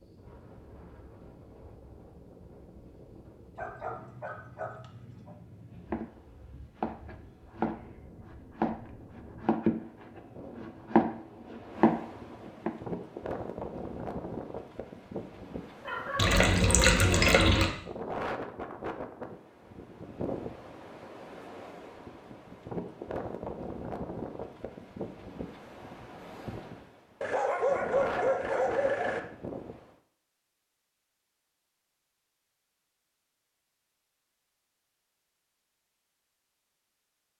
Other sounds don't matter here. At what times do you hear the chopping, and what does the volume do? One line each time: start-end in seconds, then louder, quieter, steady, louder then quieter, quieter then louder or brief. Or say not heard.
5.8-12.1 louder.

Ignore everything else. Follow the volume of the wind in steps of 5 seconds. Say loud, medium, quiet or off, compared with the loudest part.
quiet, quiet, loud, loud, loud, loud, off, off.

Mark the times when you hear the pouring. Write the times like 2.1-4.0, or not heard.
16.1-17.8.